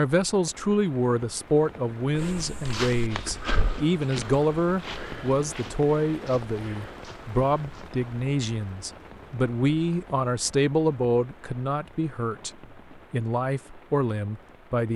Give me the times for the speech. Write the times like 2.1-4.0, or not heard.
0.0-14.9.